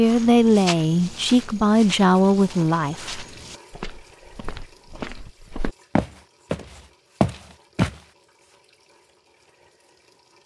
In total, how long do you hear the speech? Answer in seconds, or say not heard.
3 s.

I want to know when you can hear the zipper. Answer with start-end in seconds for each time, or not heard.
not heard.